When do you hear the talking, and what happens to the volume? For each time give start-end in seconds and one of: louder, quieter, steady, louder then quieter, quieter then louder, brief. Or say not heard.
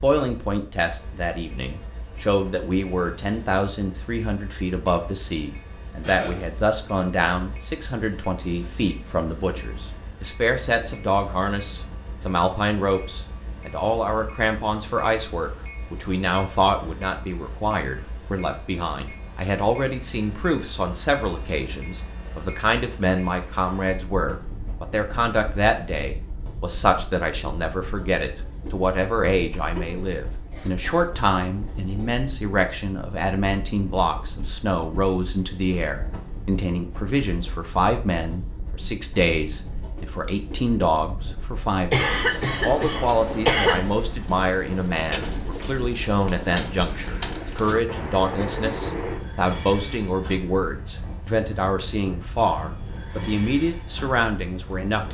0.0-55.0 steady.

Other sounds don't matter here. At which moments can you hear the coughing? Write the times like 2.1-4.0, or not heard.
6.0-6.5, 29.6-31.1, 41.9-43.8.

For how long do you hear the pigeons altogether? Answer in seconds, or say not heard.
7 s.